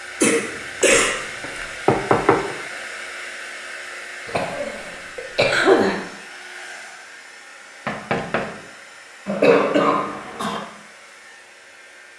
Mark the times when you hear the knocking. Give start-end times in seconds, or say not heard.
0.8-2.5, 7.8-8.6.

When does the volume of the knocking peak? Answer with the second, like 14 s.
2 s.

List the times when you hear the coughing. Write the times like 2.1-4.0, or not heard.
0.2-1.6, 4.2-6.0, 9.2-10.6.